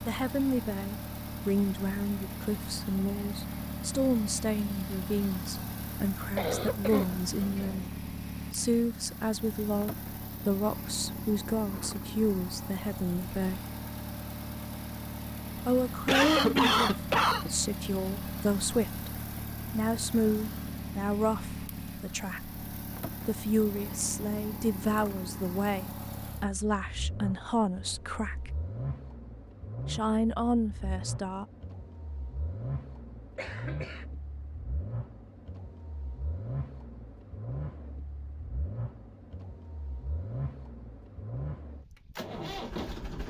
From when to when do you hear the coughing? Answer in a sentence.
You can hear the coughing from 6.3 to 7.8 s, from 16.1 to 17.5 s and from 33.4 to 34.0 s.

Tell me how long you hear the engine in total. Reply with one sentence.
You can hear the engine for 43 seconds altogether.